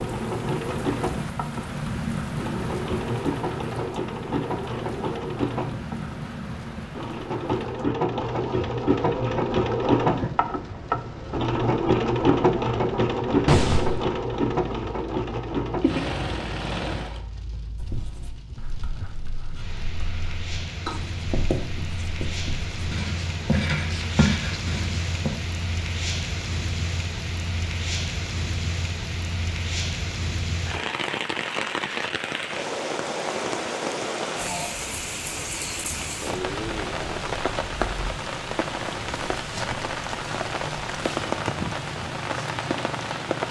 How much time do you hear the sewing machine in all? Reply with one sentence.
You can hear the sewing machine for 17 seconds altogether.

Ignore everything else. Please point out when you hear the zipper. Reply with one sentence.
The zipper can be heard from 13.4 to 14.1 s.